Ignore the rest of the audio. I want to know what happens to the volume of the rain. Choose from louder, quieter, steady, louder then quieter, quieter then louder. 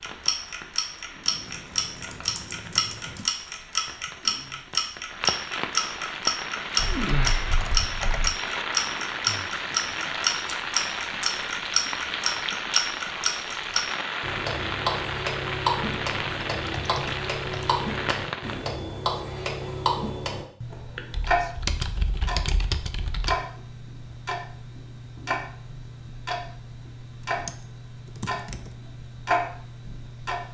louder.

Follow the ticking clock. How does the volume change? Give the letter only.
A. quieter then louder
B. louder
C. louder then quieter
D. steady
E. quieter
E.